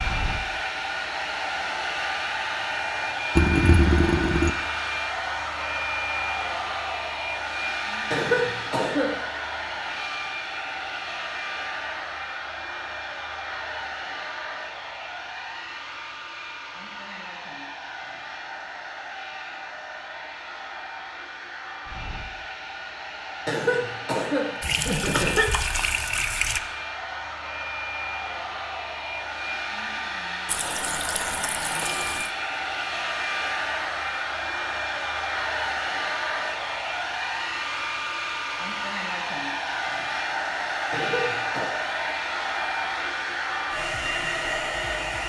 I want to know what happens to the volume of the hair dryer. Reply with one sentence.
The loudness of the hair dryer goes down, then up.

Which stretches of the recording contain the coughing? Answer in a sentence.
The coughing can be heard from 8.1 to 9.2 s, from 23.4 to 25.4 s and from 40.9 to 41.8 s.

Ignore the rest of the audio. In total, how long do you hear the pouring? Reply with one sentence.
You can hear the pouring for 5 seconds altogether.